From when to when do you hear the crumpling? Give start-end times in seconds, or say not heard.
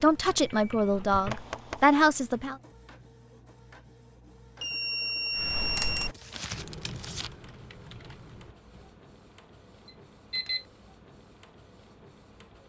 6.1-7.3.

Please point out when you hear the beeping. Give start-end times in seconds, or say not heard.
0.5-2.0, 4.6-6.1, 9.8-10.7.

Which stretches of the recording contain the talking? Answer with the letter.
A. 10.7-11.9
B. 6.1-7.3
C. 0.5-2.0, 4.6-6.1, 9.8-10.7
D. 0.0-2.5
D.